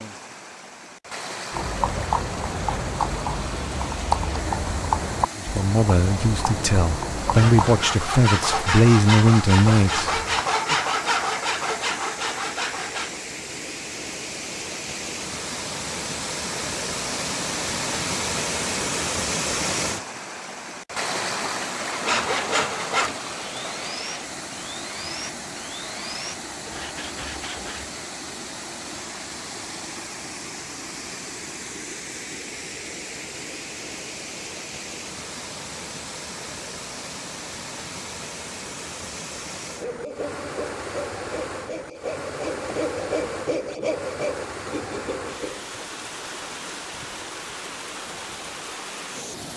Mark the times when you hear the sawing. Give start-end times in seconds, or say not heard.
7.2-13.2, 21.9-27.9, 39.6-45.7.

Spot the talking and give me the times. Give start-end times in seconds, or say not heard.
5.3-10.8.